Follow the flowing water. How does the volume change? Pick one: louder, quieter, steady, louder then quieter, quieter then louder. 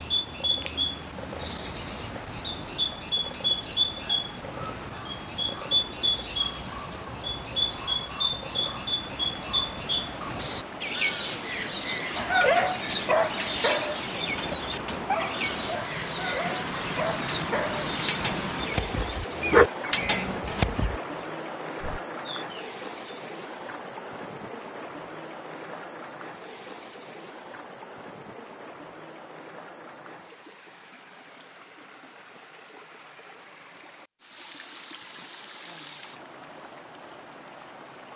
louder then quieter.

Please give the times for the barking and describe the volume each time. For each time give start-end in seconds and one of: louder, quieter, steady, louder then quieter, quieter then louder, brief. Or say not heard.
12.2-21.0 quieter then louder.